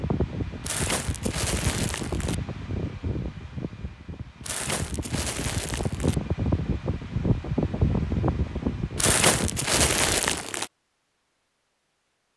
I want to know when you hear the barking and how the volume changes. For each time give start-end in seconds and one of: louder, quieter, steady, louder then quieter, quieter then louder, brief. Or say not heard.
not heard.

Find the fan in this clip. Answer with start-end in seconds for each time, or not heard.
0.0-10.4.